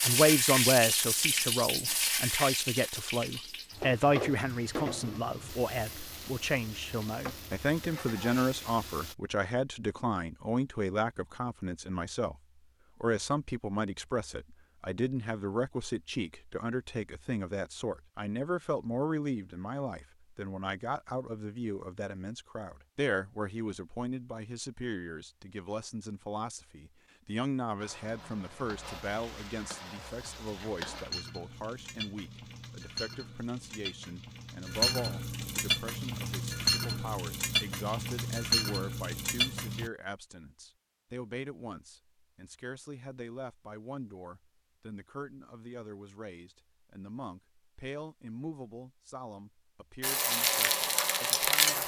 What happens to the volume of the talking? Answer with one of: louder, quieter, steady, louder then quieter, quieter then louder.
quieter.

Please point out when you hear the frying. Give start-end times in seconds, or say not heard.
0.0-9.2, 27.8-39.9, 50.0-51.8.